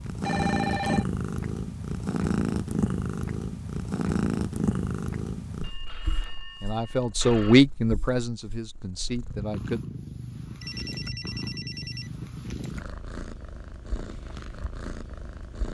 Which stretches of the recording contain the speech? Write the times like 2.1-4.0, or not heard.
6.6-9.8.